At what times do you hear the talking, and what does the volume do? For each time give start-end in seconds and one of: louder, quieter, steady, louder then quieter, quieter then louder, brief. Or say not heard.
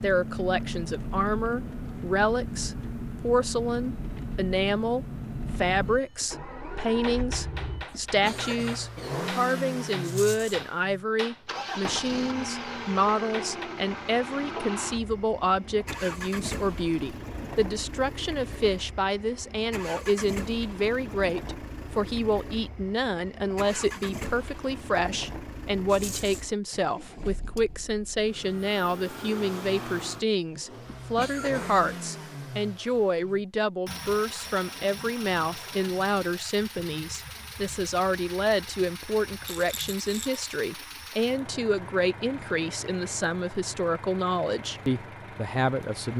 0.0-46.1 steady.